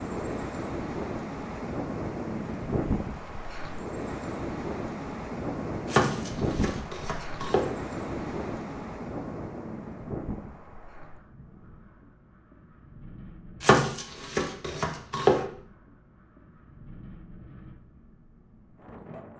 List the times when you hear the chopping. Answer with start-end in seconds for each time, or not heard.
5.8-7.7, 13.6-15.4.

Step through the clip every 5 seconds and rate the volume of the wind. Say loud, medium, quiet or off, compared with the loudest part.
loud, loud, medium, quiet.